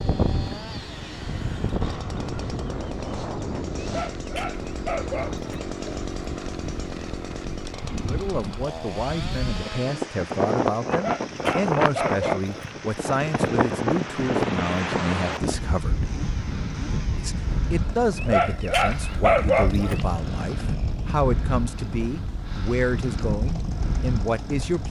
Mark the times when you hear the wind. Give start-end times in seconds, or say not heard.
0.0-24.8.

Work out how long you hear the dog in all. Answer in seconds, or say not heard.
6 s.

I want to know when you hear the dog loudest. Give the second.
19 s.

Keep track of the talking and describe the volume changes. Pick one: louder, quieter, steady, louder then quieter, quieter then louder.
steady.